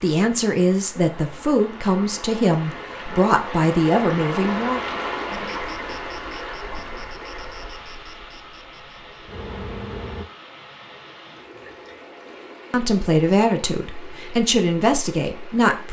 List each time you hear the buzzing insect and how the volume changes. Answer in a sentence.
You can hear the buzzing insect from 5.3 to 10.2 s, getting quieter then louder.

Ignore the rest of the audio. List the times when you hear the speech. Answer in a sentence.
The speech can be heard from 0.0 to 4.8 s and from 12.7 to 15.8 s.